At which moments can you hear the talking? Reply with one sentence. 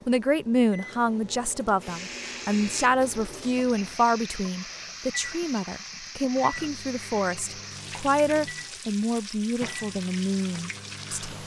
You can hear the talking from 0.1 to 11.3 s.